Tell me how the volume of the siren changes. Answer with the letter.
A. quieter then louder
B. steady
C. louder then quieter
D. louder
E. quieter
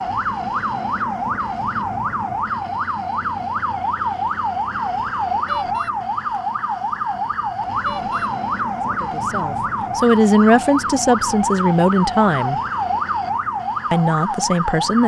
B.